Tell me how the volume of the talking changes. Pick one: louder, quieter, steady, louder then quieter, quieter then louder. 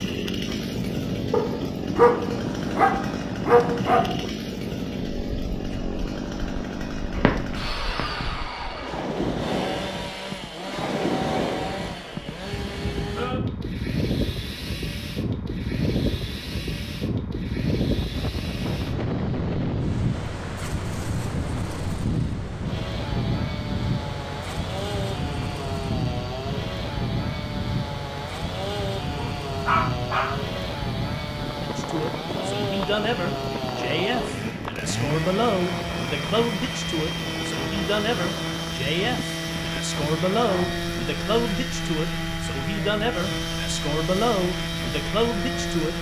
steady.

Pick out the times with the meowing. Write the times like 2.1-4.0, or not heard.
7.1-8.3.